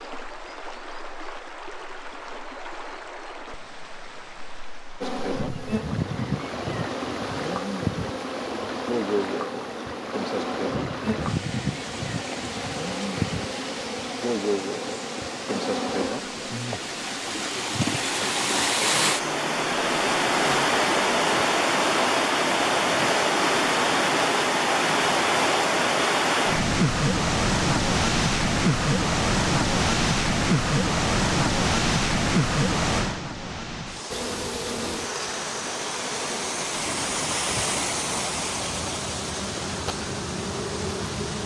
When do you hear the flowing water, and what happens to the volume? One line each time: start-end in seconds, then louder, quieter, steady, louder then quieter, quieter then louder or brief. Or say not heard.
0.0-41.4 louder then quieter.